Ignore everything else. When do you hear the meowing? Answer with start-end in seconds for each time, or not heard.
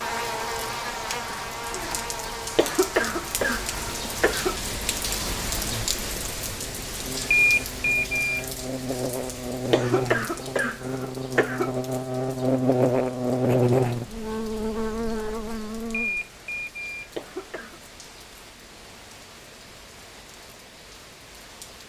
not heard.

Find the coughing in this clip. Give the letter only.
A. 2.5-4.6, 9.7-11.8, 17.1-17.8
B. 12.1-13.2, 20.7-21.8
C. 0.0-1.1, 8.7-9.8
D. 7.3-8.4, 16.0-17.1
A.